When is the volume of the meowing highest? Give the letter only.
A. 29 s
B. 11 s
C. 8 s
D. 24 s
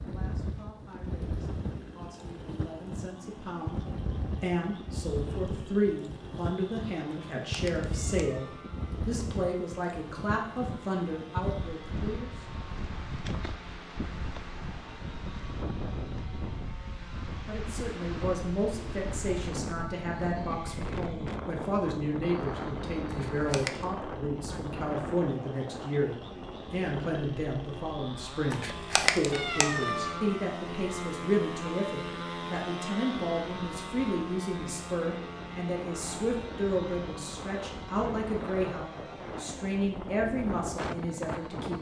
A.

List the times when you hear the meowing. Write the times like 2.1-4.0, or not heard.
7.1-8.7, 23.1-23.9, 28.5-30.2.